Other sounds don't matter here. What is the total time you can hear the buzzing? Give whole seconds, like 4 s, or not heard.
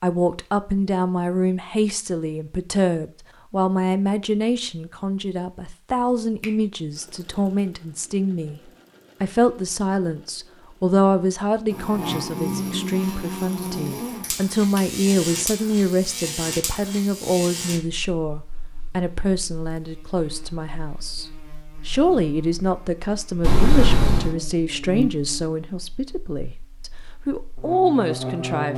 17 s.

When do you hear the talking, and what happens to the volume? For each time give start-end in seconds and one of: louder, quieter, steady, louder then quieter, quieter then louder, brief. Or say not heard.
0.0-28.7 steady.